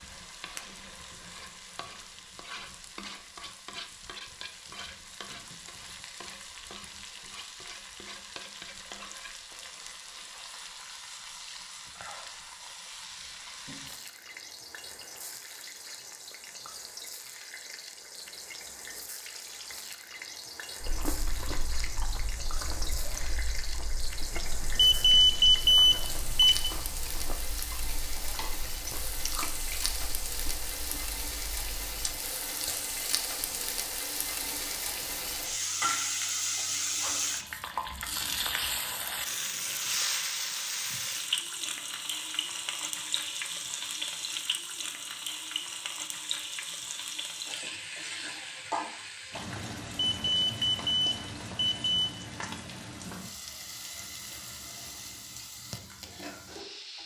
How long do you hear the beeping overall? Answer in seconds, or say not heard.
5 s.